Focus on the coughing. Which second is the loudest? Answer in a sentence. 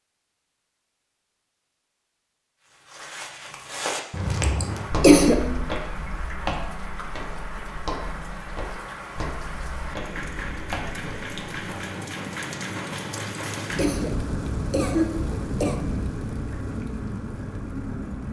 The volume of the coughing peaks at 5 seconds.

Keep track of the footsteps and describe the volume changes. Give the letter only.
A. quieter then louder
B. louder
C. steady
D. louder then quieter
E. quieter
E.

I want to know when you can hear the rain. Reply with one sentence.
You can hear the rain from 4.7 to 18.2 s.